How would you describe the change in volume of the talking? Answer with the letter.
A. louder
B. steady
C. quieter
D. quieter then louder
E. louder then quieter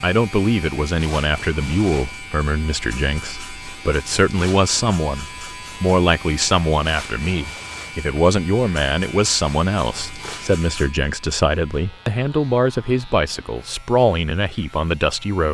B.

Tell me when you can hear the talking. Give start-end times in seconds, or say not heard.
0.0-15.4.